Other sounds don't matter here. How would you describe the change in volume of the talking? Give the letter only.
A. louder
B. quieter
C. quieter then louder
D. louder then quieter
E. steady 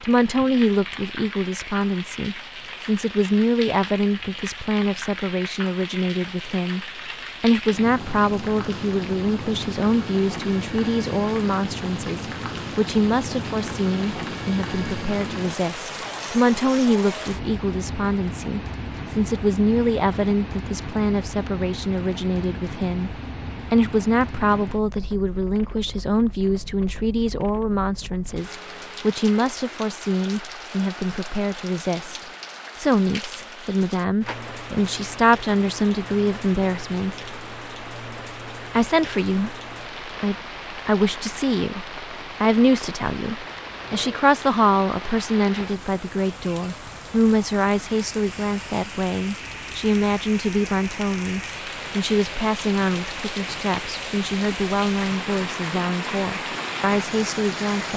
E.